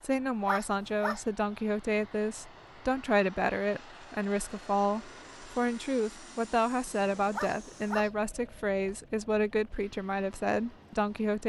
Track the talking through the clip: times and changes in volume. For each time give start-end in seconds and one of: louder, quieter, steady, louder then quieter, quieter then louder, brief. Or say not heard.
0.0-11.4 steady.